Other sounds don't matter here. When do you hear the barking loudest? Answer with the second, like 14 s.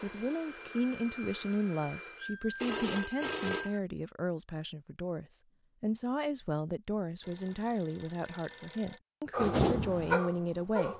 10 s.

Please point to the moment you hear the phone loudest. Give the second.
3 s.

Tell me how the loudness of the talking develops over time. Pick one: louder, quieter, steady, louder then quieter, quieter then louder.
steady.